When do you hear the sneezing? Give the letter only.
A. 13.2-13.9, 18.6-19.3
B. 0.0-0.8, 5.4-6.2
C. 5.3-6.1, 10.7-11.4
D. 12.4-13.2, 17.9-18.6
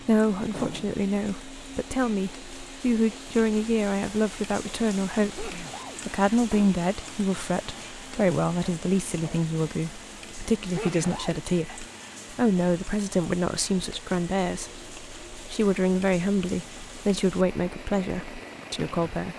C.